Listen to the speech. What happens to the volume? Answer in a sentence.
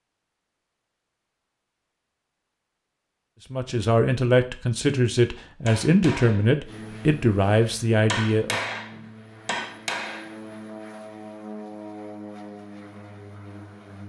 The volume of the speech stays about the same.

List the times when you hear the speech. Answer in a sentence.
The speech can be heard from 3.5 to 8.6 s.